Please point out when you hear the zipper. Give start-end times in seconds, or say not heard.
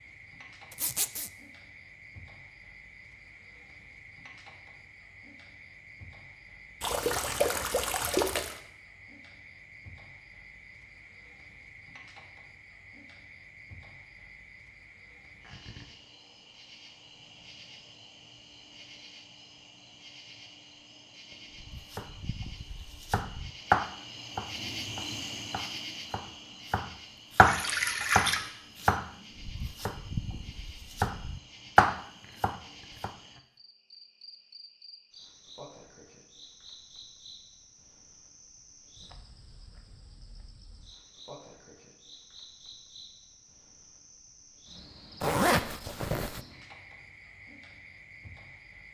0.7-1.3, 45.2-46.4.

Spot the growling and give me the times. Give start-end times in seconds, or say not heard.
not heard.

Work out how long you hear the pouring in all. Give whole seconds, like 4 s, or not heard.
3 s.